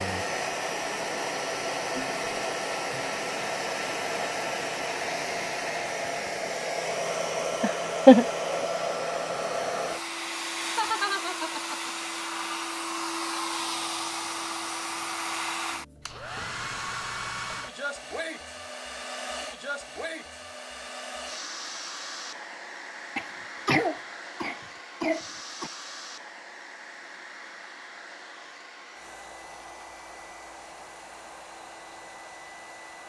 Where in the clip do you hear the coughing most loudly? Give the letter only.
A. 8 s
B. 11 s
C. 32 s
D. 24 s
A.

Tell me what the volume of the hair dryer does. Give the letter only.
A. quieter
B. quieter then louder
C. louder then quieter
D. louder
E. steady
A.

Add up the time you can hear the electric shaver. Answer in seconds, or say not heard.
not heard.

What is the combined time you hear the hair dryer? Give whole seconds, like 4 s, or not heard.
33 s.